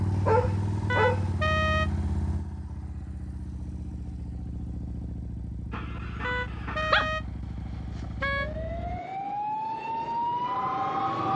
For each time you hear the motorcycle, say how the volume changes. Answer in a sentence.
You can hear the motorcycle from 0.0 to 9.0 s, getting quieter.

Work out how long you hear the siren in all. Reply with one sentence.
The siren can be heard for 3 seconds in total.